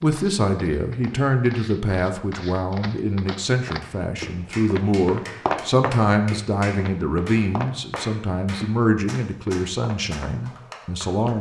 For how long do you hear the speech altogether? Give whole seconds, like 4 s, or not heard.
11 s.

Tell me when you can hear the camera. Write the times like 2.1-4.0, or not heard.
not heard.